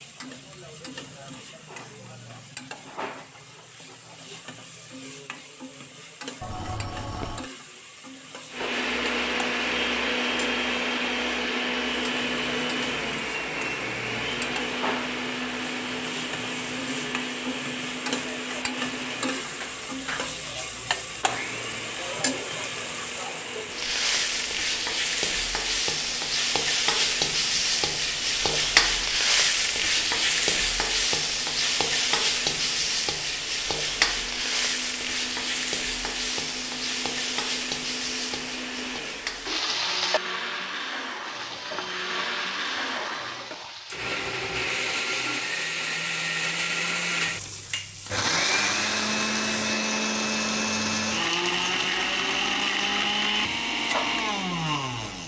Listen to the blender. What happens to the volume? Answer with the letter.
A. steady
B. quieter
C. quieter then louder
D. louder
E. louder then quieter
C.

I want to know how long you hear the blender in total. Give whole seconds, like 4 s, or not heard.
47 s.